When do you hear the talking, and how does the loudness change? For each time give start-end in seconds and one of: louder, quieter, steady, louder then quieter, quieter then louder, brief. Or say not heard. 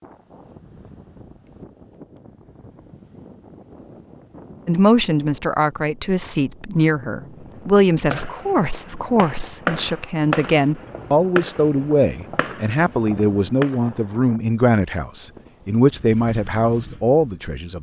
4.7-17.7 steady.